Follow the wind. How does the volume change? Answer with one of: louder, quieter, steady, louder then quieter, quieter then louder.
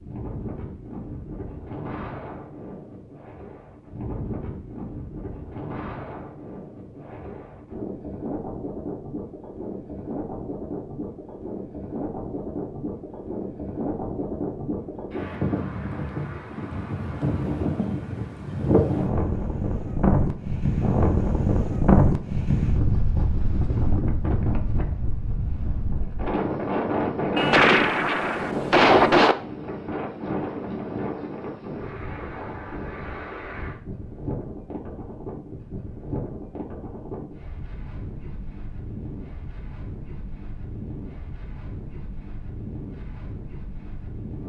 louder then quieter.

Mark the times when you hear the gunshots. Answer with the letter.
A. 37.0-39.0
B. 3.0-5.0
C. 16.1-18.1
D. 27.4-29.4
D.